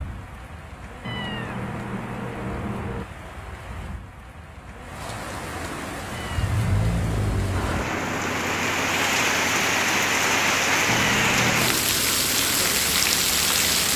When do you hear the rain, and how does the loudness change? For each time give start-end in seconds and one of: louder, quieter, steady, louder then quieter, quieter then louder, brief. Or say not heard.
0.0-13.9 louder.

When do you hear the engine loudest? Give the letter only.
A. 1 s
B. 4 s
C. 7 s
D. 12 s
C.